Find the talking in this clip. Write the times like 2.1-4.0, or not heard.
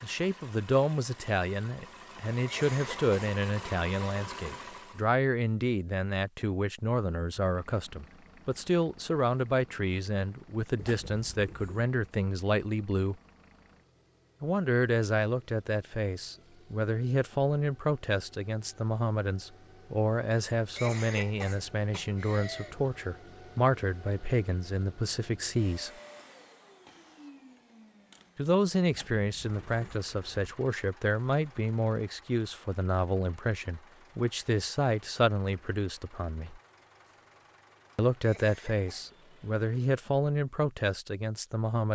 0.0-13.2, 14.4-25.9, 28.4-36.6, 38.0-41.9.